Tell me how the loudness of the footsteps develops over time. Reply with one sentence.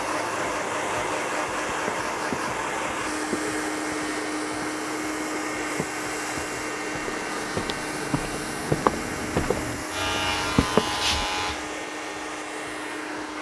The loudness of the footsteps goes down, then up.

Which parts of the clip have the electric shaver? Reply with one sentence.
The electric shaver can be heard from 9.9 to 13.3 s.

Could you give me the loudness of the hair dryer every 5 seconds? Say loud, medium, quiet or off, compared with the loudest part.
loud, loud, medium.